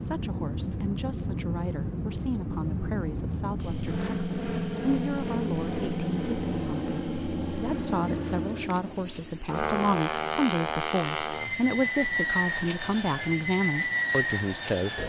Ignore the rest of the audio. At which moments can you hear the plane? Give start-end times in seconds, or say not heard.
0.0-15.0.